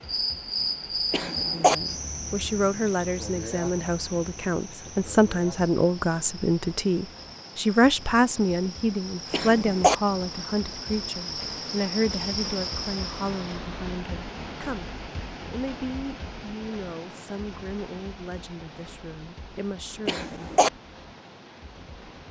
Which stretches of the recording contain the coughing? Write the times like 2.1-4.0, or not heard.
1.1-1.8, 9.3-9.9, 20.1-20.7.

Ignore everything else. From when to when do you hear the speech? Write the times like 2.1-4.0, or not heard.
1.5-14.9, 15.5-20.2.